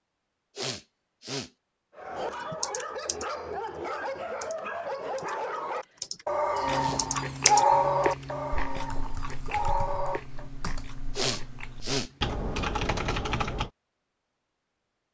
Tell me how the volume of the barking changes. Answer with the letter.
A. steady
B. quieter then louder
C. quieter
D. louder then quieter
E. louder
D.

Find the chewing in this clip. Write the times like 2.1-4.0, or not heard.
6.6-12.2.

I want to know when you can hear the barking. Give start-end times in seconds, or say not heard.
1.9-10.4.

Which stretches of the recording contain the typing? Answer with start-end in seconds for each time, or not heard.
2.3-13.7.